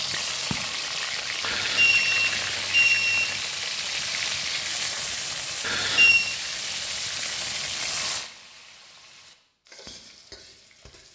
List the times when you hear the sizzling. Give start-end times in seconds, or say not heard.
0.0-11.1.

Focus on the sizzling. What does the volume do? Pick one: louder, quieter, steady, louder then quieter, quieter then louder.
quieter.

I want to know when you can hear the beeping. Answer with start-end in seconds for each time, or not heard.
1.4-3.4, 5.6-6.3.